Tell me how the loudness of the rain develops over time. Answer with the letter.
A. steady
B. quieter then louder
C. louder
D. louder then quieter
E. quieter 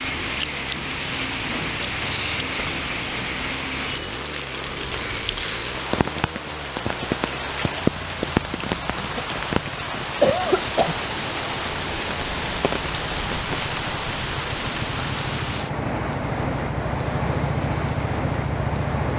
A.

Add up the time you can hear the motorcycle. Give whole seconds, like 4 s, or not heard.
19 s.